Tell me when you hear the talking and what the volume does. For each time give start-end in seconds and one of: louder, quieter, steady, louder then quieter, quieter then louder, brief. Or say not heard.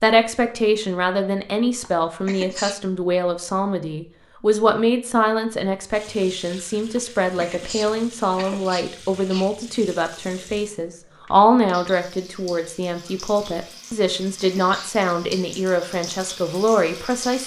0.0-17.4 steady.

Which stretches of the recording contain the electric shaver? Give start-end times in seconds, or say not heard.
not heard.